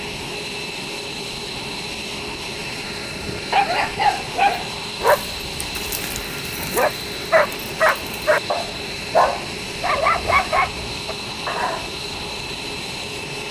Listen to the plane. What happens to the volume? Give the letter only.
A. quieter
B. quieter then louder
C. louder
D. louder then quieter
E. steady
E.